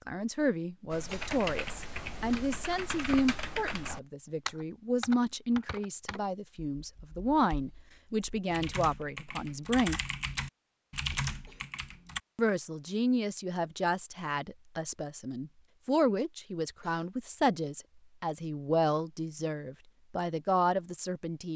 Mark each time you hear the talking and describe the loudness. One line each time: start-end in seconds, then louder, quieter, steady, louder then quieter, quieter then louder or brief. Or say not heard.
0.1-10.0 steady
12.3-21.5 steady.